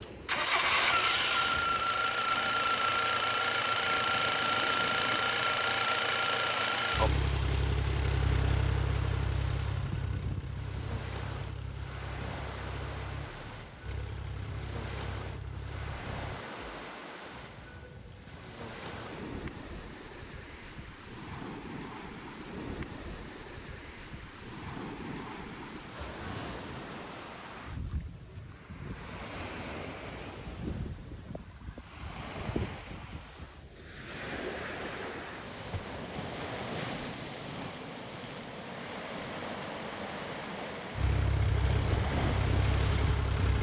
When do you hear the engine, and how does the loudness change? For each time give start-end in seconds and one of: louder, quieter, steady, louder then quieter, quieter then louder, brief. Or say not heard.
0.0-16.4 quieter
41.0-43.5 brief.